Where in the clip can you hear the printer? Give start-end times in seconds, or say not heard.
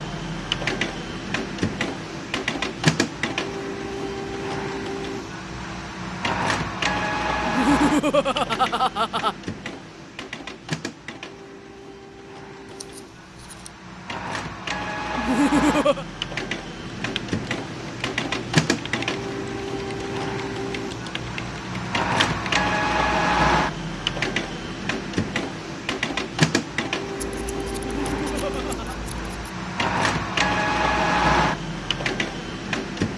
0.0-33.1.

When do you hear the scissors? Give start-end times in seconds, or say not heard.
12.7-13.7, 27.1-29.6.